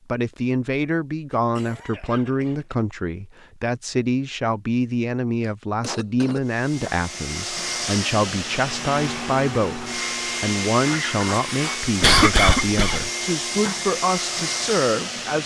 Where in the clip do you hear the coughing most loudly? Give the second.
12 s.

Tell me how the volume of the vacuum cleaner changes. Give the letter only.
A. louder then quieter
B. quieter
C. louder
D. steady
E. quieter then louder
D.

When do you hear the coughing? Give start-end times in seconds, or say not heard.
1.3-2.8, 5.4-6.4, 12.0-13.1.